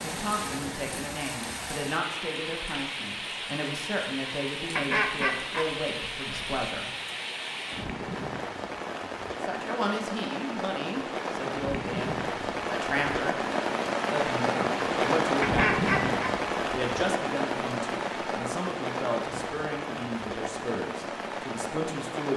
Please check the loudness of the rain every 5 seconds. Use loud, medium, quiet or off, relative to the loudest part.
medium, medium, loud, loud, medium.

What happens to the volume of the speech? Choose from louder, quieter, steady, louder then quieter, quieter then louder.
steady.